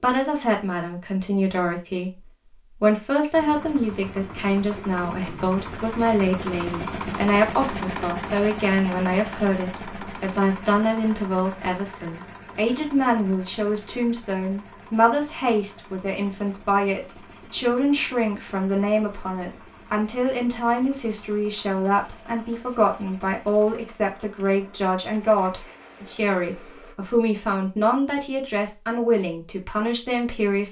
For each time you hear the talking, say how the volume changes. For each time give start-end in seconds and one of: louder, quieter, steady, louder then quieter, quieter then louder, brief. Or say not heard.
0.0-30.6 steady.